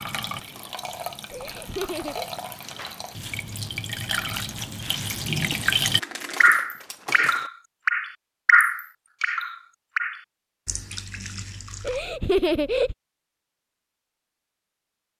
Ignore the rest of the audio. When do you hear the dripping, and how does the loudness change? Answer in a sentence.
You can hear the dripping from 0.0 to 12.0 s, getting louder then quieter.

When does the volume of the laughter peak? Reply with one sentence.
The loudest moment of the laughter is at 12 seconds.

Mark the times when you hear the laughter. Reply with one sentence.
You can hear the laughter from 1.3 to 2.3 s and from 11.8 to 12.9 s.